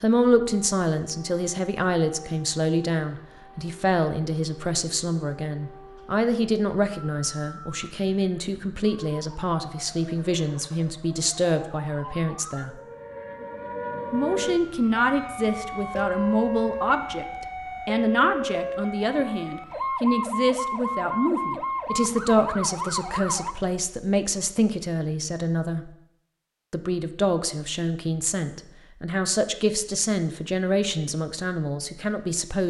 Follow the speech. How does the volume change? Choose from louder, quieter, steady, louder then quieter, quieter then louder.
steady.